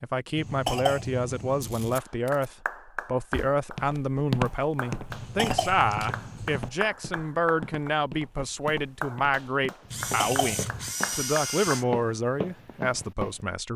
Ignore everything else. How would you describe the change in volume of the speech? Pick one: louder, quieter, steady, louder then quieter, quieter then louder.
steady.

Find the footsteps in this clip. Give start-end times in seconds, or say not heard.
3.3-13.3.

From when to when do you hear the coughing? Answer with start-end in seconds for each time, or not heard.
0.3-1.9, 5.1-6.7, 9.9-10.9.